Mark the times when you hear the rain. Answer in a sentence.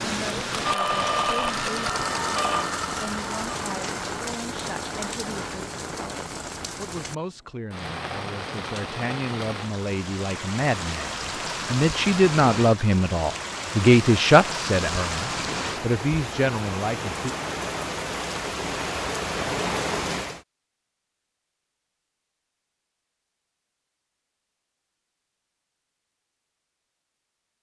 The rain can be heard from 0.0 to 20.4 s.